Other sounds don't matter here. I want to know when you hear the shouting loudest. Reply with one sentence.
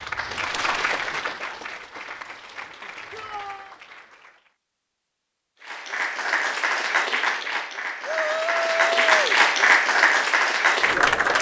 The volume of the shouting peaks at 9 seconds.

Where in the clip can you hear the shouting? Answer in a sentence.
The shouting can be heard from 3.1 to 3.8 s and from 8.1 to 9.4 s.